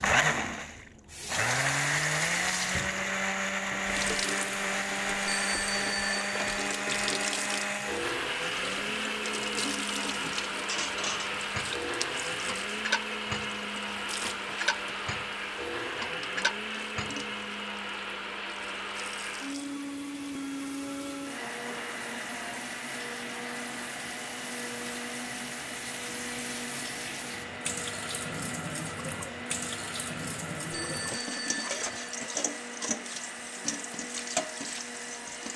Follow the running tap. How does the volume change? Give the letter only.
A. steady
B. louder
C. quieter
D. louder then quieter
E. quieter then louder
E.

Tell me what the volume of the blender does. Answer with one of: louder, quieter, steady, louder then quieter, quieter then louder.
quieter.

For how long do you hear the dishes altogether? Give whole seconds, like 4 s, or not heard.
7 s.